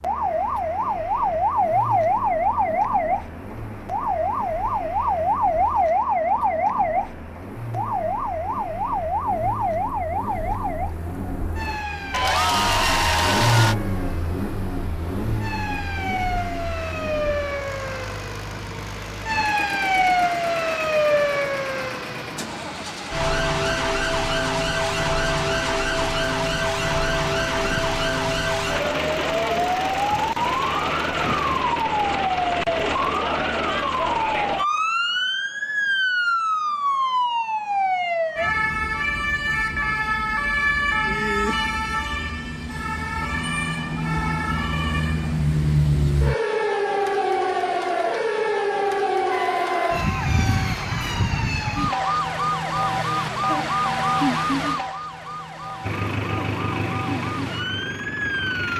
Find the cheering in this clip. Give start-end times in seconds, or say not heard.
12.1-13.8, 49.3-51.2.